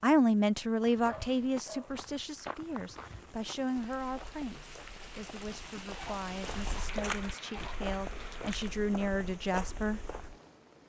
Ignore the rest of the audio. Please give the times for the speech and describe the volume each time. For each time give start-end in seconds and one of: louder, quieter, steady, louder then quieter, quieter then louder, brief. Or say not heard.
0.0-10.0 quieter then louder.